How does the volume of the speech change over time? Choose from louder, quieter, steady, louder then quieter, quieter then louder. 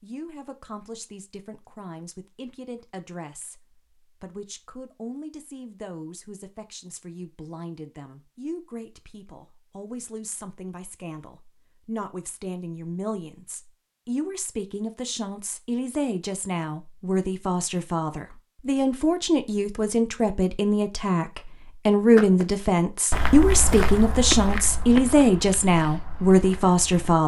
louder.